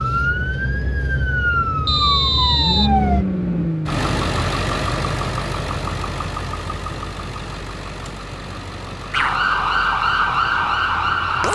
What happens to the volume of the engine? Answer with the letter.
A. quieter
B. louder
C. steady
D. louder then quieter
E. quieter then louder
A.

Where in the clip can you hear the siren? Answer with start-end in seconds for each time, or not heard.
0.0-3.2, 9.1-11.5.